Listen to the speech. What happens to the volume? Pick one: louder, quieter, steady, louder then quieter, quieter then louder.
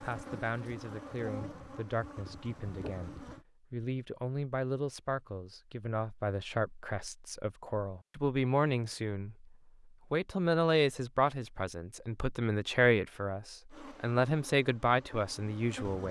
louder.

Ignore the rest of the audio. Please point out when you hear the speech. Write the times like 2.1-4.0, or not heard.
0.0-16.0.